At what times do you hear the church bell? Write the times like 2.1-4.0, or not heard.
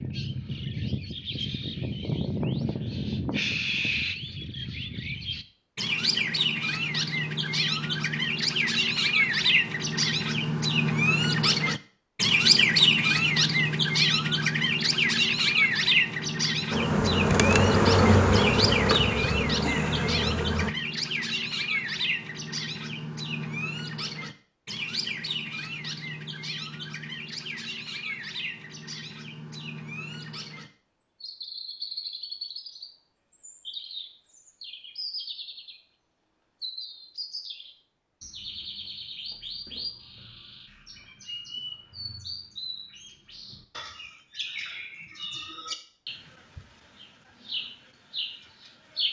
not heard.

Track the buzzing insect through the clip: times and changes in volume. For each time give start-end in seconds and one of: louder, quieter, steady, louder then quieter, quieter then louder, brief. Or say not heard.
16.7-20.8 quieter.